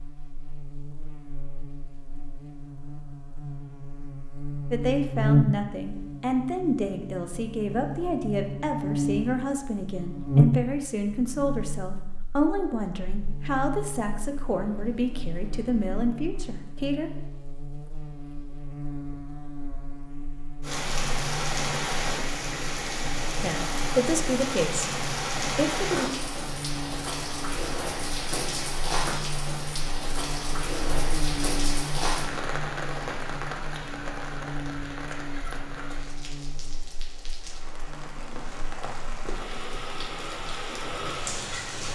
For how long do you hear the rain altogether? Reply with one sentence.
The rain can be heard for 21 seconds in total.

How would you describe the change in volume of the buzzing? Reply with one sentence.
The loudness of the buzzing goes down.